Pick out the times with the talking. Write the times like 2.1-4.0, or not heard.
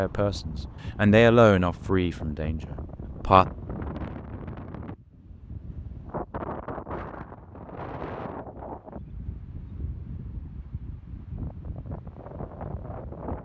0.0-3.5.